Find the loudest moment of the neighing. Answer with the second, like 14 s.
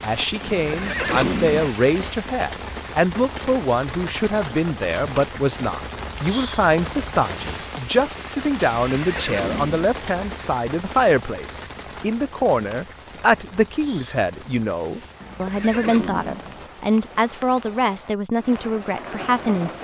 1 s.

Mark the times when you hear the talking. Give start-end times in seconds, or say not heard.
0.0-19.8.